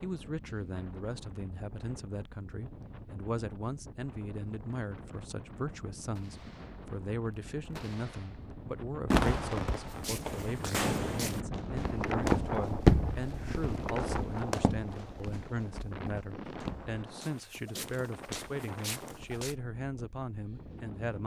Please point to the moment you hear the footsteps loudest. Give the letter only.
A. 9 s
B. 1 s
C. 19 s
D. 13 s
D.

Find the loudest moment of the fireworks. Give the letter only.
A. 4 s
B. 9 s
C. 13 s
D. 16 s
B.